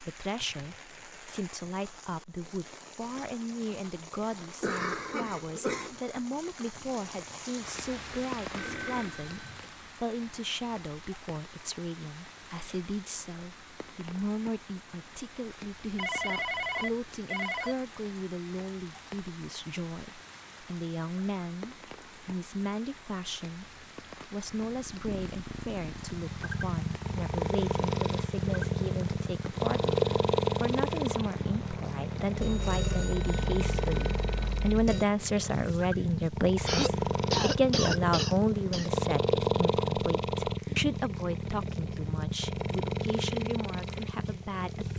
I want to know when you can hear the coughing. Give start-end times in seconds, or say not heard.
4.6-6.0, 36.6-38.9.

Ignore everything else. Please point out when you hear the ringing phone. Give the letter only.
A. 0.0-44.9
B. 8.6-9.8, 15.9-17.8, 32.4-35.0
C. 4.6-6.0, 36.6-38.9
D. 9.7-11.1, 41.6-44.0
B.